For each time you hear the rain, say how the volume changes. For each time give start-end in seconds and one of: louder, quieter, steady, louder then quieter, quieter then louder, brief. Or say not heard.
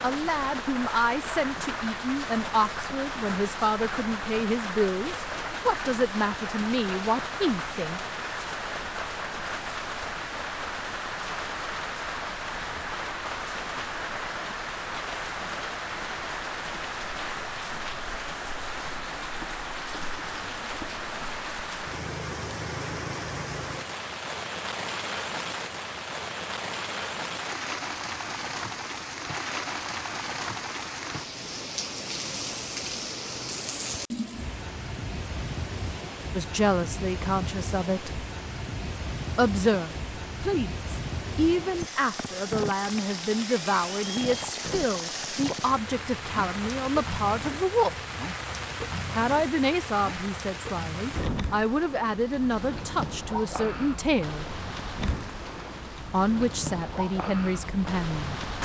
0.0-58.6 steady.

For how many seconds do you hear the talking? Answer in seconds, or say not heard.
26 s.